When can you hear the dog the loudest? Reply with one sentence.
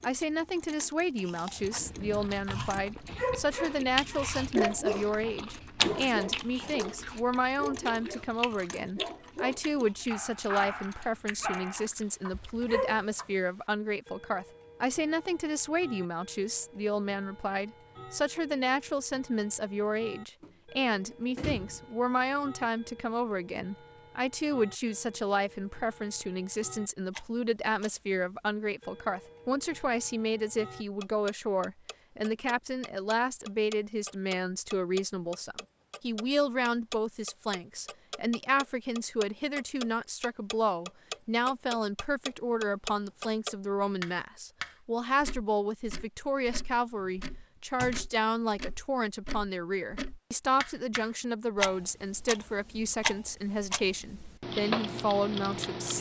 The volume of the dog peaks at 5 seconds.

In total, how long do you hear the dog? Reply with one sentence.
You can hear the dog for 12 seconds altogether.